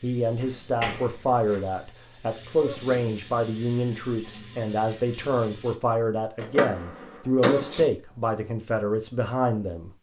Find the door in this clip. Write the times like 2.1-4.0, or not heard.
0.4-1.6, 6.4-7.8.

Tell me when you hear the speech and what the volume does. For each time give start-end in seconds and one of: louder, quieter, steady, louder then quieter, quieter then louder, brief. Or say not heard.
0.0-9.9 steady.